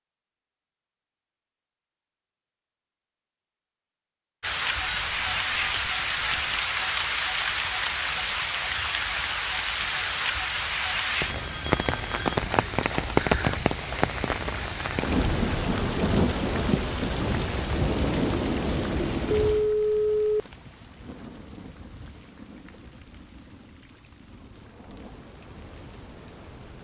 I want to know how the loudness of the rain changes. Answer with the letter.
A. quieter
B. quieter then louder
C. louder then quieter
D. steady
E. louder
A.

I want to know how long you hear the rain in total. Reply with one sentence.
The rain can be heard for 22 seconds in total.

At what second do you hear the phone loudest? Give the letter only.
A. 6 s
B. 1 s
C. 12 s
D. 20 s
D.